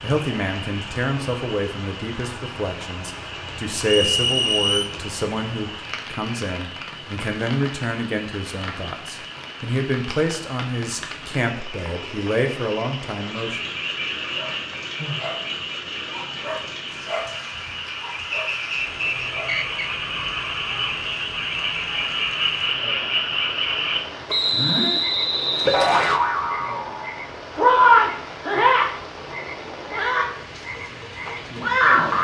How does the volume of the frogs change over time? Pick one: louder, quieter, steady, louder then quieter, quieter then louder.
louder.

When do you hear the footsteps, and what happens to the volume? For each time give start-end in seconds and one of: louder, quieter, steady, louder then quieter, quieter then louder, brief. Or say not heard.
not heard.